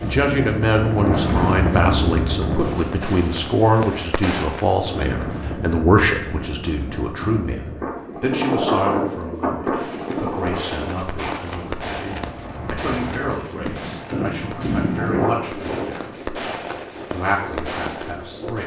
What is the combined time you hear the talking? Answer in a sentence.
You can hear the talking for 18 seconds altogether.